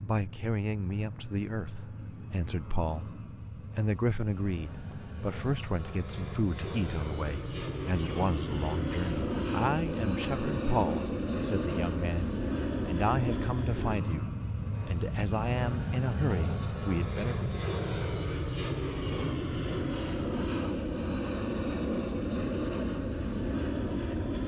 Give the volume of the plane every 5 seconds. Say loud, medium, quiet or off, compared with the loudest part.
quiet, loud, loud, loud, loud.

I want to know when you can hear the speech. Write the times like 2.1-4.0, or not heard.
0.0-17.6.